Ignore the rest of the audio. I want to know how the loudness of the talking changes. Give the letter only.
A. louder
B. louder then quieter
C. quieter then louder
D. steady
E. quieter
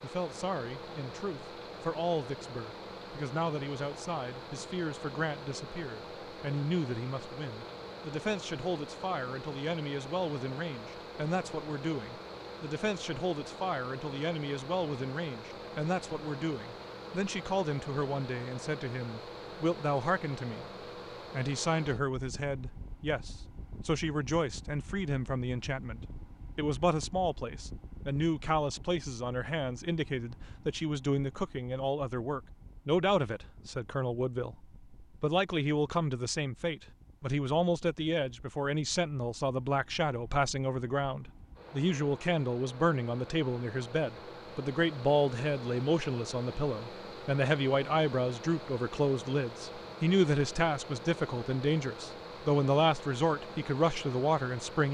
A.